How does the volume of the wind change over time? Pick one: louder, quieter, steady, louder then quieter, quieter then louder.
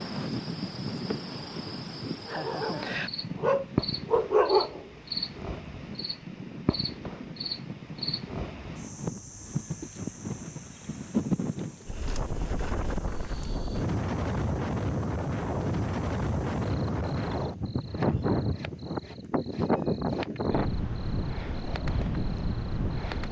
louder.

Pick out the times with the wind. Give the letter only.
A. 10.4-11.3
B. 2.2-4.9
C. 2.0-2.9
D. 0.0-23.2
D.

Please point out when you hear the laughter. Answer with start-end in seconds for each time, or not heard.
2.0-2.9.